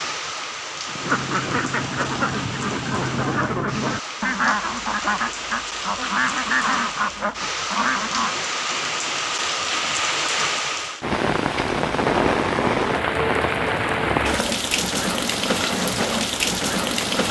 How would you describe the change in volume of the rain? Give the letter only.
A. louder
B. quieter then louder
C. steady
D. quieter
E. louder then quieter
A.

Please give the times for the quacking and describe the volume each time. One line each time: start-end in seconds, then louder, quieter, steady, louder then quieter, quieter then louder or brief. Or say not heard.
0.8-8.3 steady.